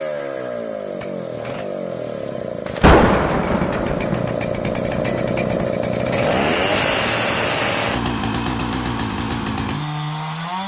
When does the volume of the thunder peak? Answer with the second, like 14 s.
3 s.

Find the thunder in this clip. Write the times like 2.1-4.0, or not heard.
2.6-5.7.